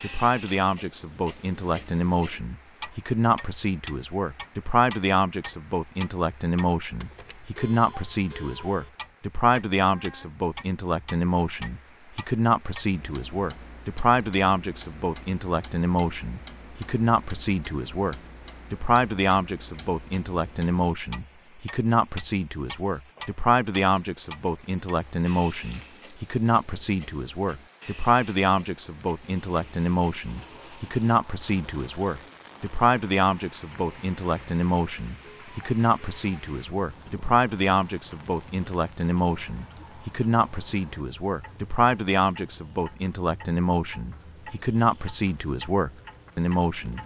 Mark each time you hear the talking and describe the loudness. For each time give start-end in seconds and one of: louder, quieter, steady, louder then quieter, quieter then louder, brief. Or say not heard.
0.0-47.0 steady.